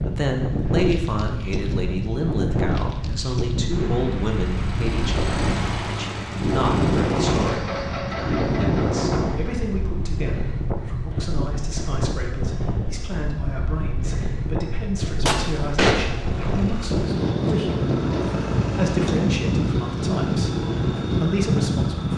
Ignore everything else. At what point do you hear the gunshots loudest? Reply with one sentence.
The loudest moment of the gunshots is at 16 seconds.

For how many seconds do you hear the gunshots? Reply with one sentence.
The gunshots can be heard for 2 seconds in total.